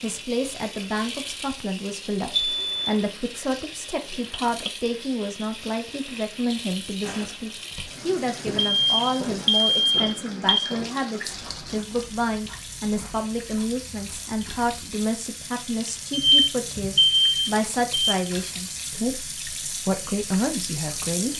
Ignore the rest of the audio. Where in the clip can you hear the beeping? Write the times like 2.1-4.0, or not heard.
2.3-2.7, 8.6-10.6, 16.1-18.1.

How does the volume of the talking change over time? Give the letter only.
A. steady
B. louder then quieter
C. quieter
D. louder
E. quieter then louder
A.